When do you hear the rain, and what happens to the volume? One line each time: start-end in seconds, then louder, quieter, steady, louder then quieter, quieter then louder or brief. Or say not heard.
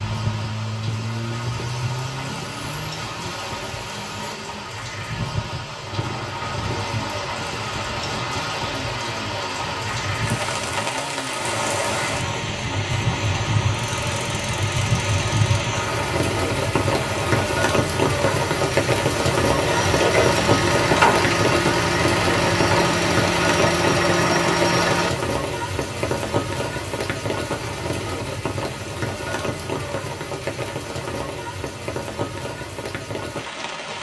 0.0-33.9 louder then quieter.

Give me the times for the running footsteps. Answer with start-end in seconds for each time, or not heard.
not heard.